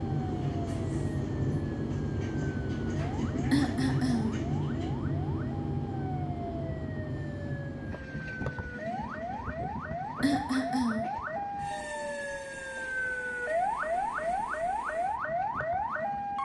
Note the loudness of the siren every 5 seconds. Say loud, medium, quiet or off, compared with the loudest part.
quiet, medium, loud, loud.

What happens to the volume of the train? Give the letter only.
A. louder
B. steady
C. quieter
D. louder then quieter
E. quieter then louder
C.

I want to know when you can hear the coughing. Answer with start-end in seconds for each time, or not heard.
3.5-4.4, 10.2-11.2.